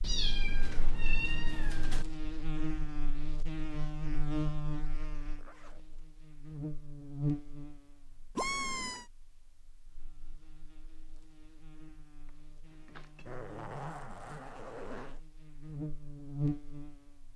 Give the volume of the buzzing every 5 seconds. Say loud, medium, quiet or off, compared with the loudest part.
loud, loud, quiet, loud.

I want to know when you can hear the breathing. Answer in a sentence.
The breathing can't be heard in this clip.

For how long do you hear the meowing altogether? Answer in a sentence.
You can hear the meowing for 4 seconds altogether.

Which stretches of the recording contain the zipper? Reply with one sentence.
You can hear the zipper from 5.3 to 5.8 s and from 13.2 to 15.2 s.